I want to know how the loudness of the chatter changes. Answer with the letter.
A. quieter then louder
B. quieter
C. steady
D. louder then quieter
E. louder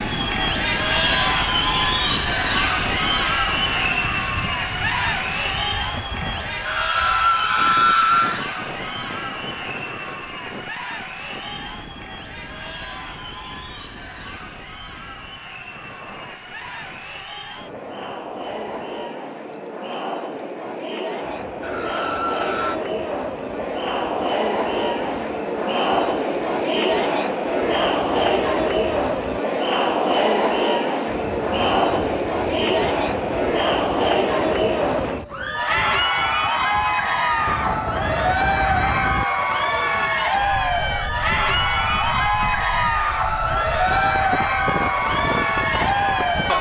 A.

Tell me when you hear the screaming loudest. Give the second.
8 s.